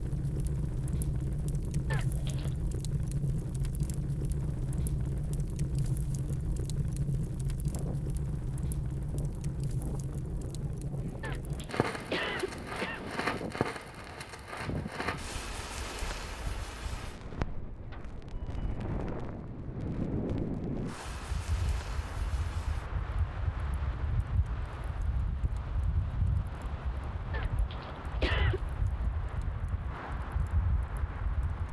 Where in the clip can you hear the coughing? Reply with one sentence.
The coughing can be heard from 1.9 to 2.5 s, from 11.2 to 13.2 s and from 27.3 to 28.6 s.